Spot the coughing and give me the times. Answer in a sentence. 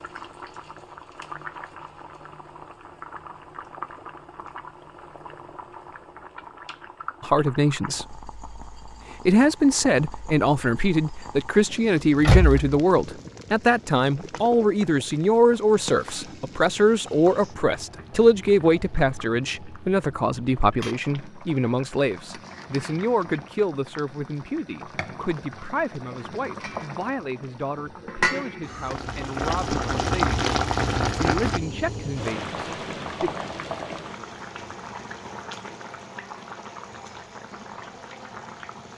The coughing can't be heard in this clip.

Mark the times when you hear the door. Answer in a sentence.
You can hear the door from 12.2 to 12.8 s.